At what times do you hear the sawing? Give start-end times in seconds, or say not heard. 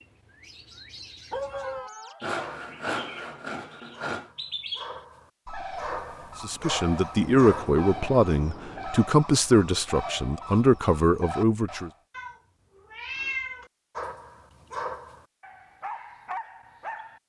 2.2-4.3.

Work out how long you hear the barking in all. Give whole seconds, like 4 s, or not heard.
10 s.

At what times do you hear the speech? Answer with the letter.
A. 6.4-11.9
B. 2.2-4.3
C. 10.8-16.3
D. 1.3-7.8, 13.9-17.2
A.